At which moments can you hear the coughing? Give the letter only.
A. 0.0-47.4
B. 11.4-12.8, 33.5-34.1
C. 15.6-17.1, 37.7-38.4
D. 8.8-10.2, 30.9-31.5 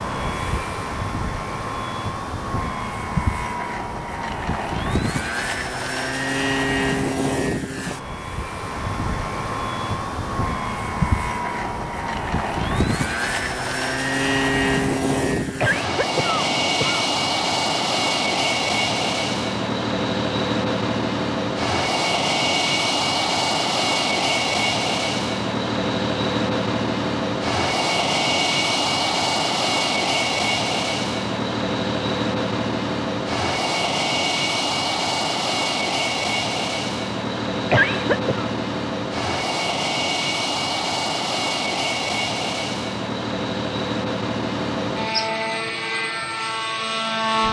C.